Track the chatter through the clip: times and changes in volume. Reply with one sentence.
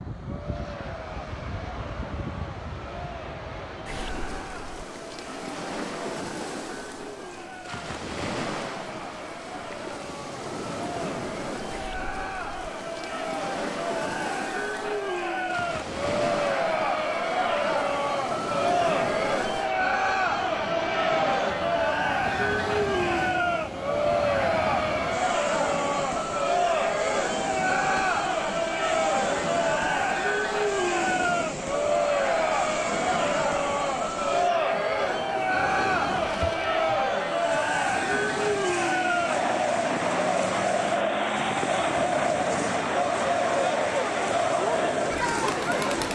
The chatter can be heard from 0.1 to 46.1 s, getting louder.